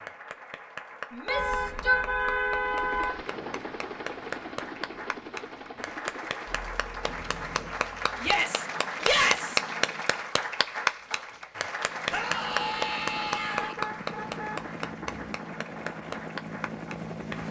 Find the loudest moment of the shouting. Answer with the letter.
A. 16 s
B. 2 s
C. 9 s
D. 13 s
C.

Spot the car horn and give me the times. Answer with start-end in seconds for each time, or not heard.
1.2-3.2, 7.0-7.8, 13.6-14.6.